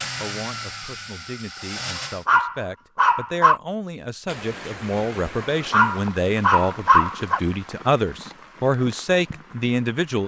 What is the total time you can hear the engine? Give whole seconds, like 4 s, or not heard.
2 s.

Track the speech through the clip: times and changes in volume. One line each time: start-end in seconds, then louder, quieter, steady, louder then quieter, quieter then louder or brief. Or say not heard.
0.2-10.2 louder.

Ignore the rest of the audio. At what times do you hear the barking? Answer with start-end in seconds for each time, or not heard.
1.9-3.6, 5.4-7.4.